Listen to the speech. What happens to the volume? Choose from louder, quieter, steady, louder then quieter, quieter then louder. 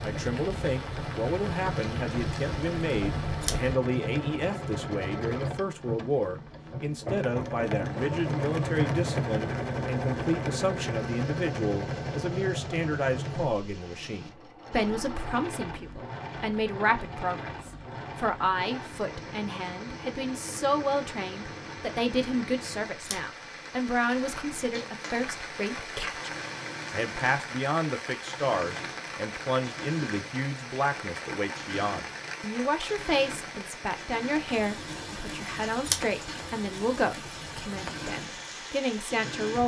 steady.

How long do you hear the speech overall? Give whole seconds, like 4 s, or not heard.
39 s.